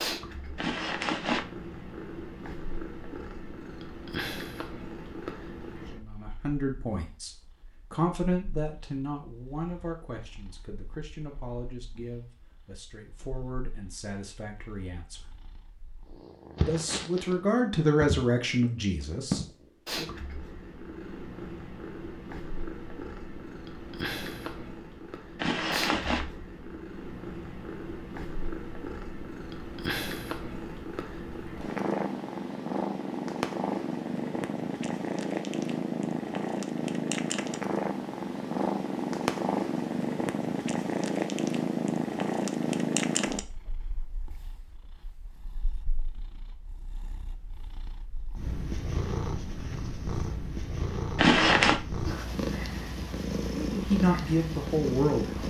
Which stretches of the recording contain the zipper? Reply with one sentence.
You can hear the zipper from 0.6 to 1.4 s, from 25.4 to 26.2 s and from 51.1 to 51.8 s.